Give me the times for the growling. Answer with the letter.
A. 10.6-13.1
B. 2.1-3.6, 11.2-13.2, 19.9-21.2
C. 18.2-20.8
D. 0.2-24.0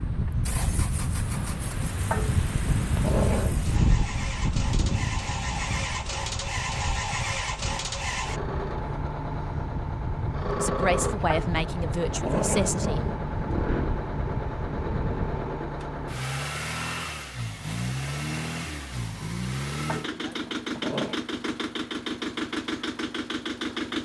B.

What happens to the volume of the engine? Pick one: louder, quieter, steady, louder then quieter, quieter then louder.
louder.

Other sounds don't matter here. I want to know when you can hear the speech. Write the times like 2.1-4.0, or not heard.
10.6-13.1.